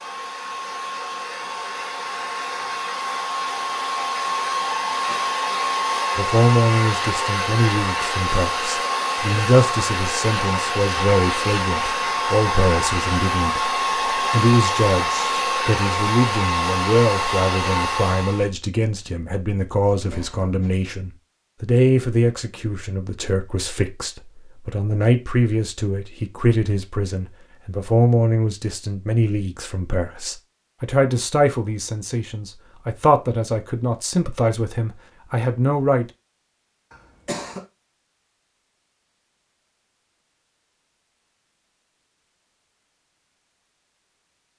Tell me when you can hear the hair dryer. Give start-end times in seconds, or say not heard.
0.0-18.5.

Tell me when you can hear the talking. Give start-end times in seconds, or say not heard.
6.2-36.0.